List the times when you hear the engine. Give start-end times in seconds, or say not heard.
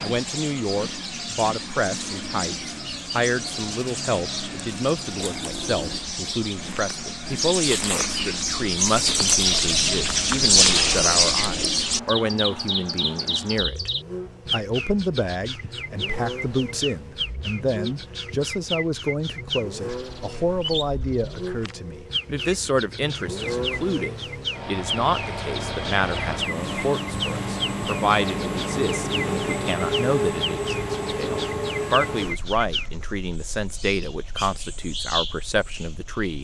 0.0-36.3.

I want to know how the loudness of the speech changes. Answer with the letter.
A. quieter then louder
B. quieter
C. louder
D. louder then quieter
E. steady
E.